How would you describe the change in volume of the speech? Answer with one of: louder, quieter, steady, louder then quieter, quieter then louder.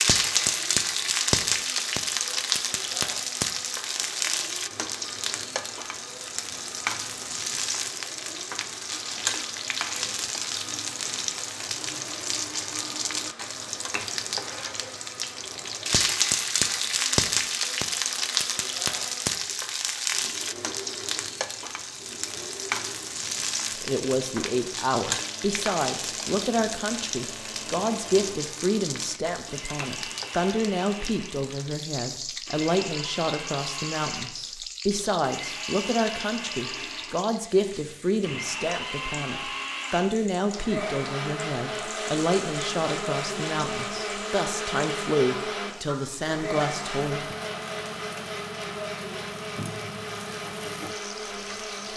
steady.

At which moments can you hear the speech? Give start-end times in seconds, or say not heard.
23.8-47.4.